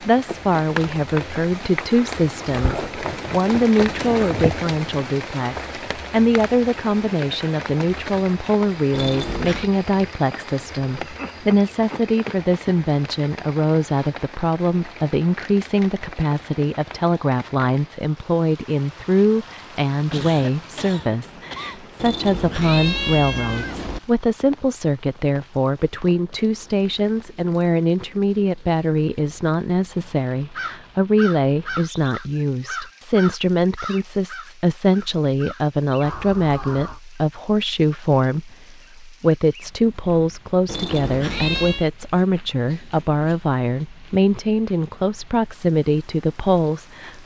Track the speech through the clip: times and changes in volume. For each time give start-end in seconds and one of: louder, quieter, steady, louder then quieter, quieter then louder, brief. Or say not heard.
0.0-47.2 steady.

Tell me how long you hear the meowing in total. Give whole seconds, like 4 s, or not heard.
4 s.